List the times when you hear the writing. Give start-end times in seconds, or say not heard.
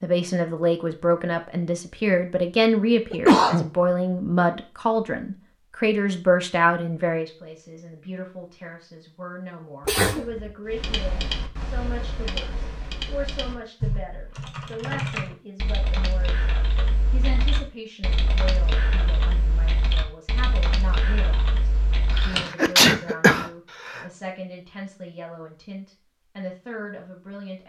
not heard.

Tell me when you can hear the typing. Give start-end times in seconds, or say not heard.
10.7-22.5.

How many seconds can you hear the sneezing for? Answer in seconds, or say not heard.
3 s.